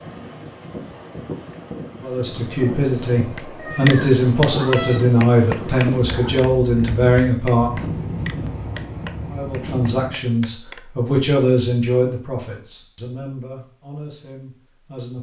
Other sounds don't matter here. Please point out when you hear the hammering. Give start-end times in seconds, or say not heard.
3.4-10.8.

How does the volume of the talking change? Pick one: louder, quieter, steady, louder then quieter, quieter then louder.
quieter.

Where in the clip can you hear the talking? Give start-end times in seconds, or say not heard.
2.0-7.8, 9.3-15.1.